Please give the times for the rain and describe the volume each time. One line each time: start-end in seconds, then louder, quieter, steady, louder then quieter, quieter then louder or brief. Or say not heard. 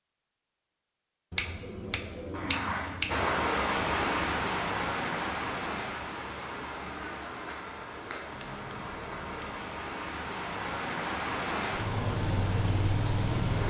3.0-13.6 quieter then louder.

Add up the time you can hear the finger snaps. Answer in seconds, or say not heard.
3 s.